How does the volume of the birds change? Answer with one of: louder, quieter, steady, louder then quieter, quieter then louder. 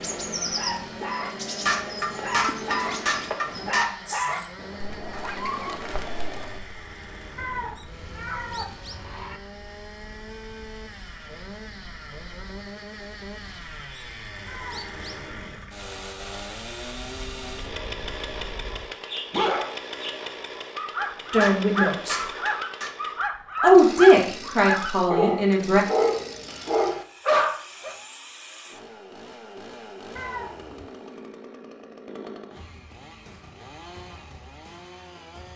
quieter then louder.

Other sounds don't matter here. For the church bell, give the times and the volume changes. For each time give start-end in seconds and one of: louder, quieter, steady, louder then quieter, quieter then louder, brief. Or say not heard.
not heard.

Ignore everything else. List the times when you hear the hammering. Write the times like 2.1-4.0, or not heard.
1.6-3.9, 21.4-22.9.